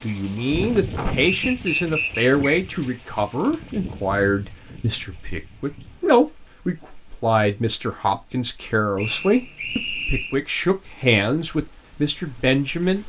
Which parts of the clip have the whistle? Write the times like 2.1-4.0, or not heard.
1.5-2.6, 8.9-10.3.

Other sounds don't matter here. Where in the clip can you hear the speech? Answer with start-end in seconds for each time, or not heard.
0.0-13.0.